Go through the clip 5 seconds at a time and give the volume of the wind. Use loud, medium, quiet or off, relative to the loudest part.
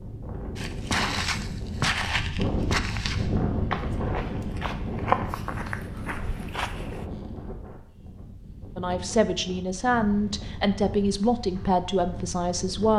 loud, medium, medium.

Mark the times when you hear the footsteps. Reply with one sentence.
The footsteps can be heard from 0.6 to 7.0 s.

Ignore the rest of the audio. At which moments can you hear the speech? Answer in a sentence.
You can hear the speech from 8.8 to 12.9 s.